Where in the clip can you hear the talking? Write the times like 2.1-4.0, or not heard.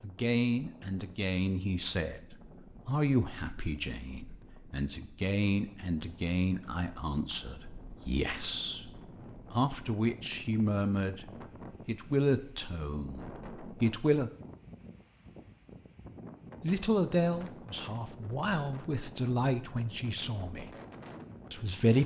0.0-11.2, 11.8-14.3, 16.6-20.7, 21.5-22.0.